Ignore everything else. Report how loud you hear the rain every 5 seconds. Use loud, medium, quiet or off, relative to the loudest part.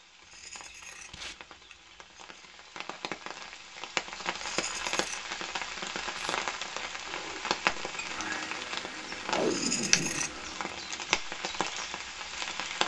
medium, loud, loud.